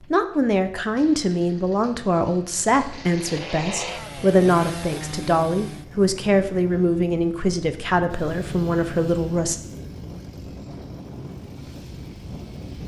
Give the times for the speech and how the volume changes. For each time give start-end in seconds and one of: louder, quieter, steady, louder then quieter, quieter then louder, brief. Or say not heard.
0.1-9.6 steady.